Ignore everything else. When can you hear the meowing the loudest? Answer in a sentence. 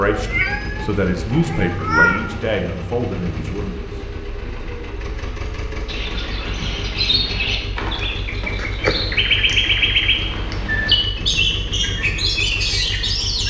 The loudest moment of the meowing is at 2 seconds.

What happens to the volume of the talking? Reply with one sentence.
The volume of the talking goes down.